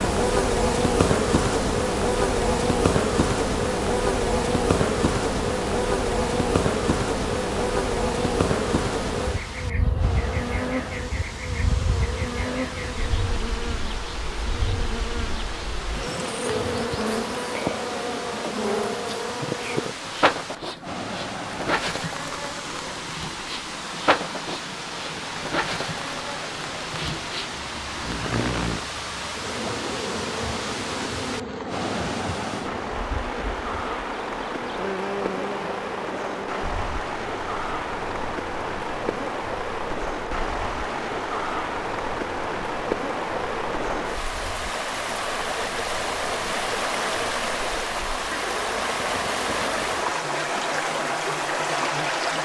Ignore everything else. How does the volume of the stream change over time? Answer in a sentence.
The loudness of the stream goes up.